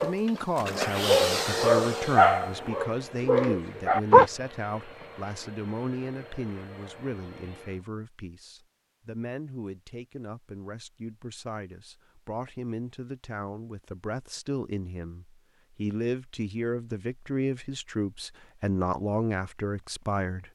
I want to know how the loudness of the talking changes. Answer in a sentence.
The volume of the talking goes down, then up.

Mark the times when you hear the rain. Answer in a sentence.
The rain can't be heard in this clip.